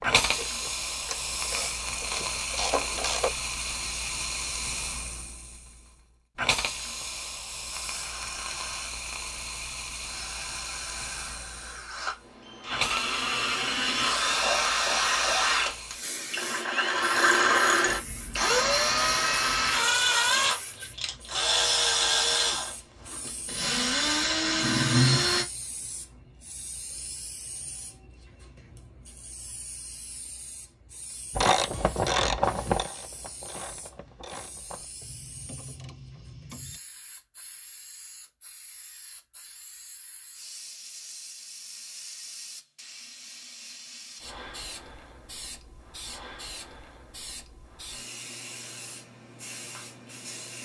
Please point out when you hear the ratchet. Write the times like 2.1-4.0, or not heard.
0.0-3.4, 31.3-36.8.